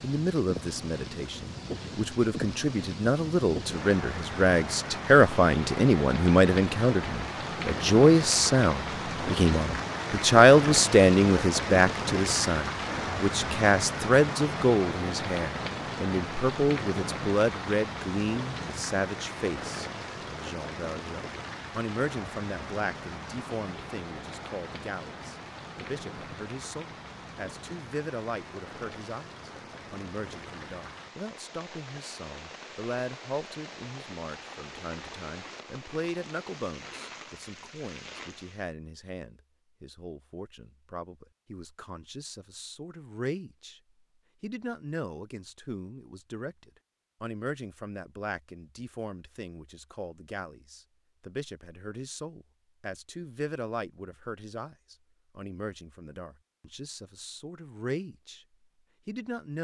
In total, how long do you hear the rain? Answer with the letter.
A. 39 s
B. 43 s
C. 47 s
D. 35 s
A.